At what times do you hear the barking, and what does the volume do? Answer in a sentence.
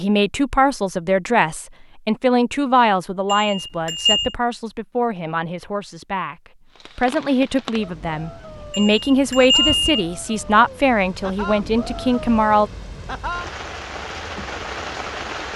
The barking can't be heard in this clip.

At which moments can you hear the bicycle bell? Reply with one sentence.
The bicycle bell can be heard from 3.2 to 4.3 s and from 8.7 to 10.1 s.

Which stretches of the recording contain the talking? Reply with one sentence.
You can hear the talking from 0.0 to 12.7 s.